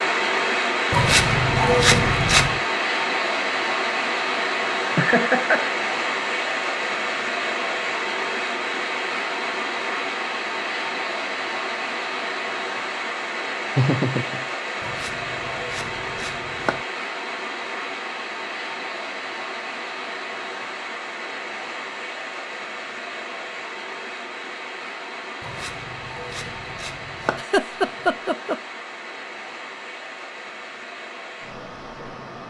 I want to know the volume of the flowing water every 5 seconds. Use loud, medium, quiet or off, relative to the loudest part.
loud, loud, medium, medium, medium, quiet, quiet.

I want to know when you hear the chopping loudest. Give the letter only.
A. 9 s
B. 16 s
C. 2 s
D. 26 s
C.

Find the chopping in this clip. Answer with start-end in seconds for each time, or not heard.
0.9-2.6, 14.8-16.8, 25.4-27.4.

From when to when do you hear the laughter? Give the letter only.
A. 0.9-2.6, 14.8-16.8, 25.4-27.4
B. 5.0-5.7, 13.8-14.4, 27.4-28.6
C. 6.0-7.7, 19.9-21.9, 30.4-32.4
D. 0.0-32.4
B.